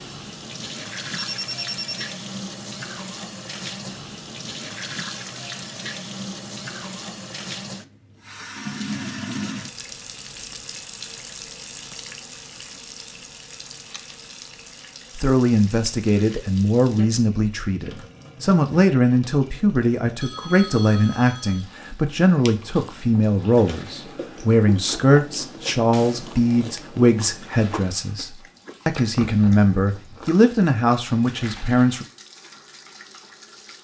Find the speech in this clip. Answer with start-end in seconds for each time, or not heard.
15.2-32.0.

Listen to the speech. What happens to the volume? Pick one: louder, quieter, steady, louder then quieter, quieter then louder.
steady.